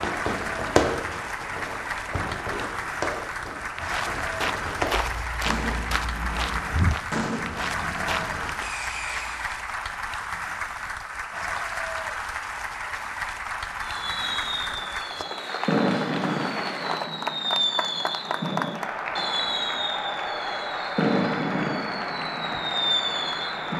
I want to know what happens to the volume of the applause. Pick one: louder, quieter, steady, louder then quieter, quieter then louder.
steady.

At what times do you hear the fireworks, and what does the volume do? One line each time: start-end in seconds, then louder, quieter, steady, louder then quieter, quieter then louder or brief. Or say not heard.
0.0-9.6 quieter
13.8-23.7 steady.